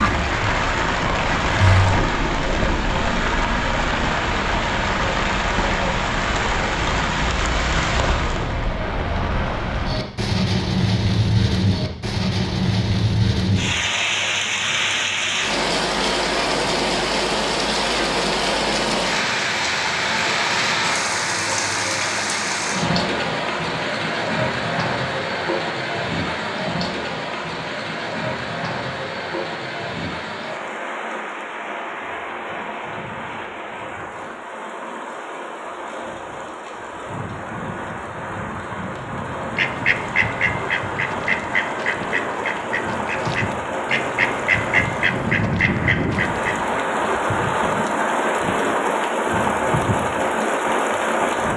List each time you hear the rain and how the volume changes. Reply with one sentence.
You can hear the rain from 0.0 to 51.5 s, getting quieter then louder.